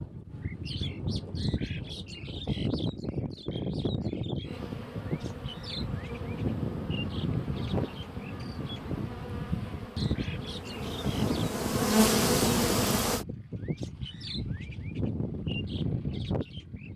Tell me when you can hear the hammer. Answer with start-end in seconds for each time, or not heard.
not heard.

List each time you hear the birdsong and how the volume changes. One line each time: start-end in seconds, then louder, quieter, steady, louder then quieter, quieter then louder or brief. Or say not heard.
0.0-16.9 steady.